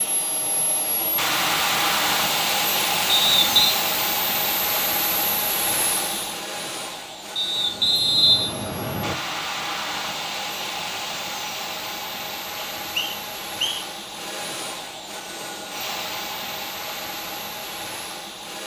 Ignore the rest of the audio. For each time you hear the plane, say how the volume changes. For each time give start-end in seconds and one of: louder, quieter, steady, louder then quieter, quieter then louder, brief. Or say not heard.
0.0-18.6 quieter.